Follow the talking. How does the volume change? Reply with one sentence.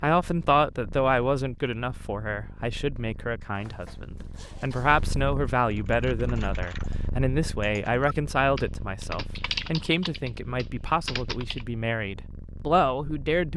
The volume of the talking stays about the same.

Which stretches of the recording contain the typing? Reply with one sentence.
The typing can be heard from 5.7 to 11.7 s.